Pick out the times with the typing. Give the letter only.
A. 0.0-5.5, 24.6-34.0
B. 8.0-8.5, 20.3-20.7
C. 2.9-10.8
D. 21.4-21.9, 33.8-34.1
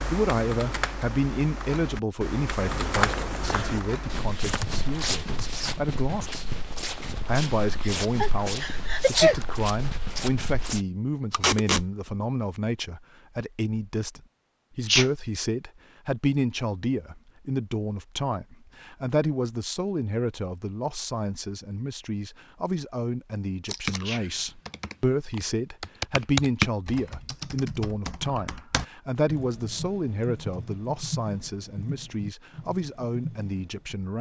A.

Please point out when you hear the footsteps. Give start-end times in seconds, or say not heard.
2.9-10.8.